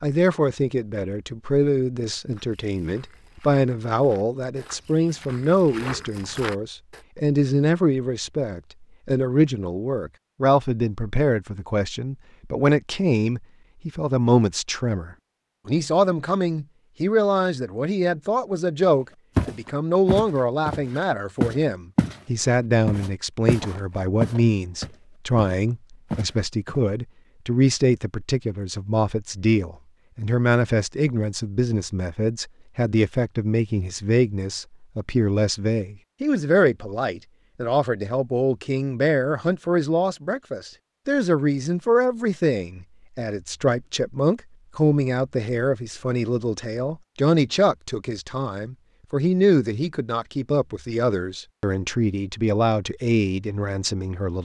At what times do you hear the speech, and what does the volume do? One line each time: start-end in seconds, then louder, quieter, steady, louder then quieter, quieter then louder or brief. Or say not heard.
0.0-54.3 steady.